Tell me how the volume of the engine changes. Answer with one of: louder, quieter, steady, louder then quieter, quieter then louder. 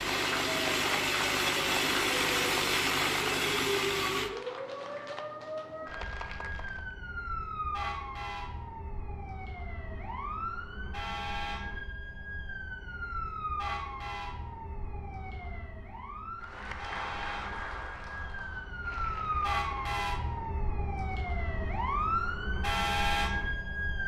steady.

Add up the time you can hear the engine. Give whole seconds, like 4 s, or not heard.
4 s.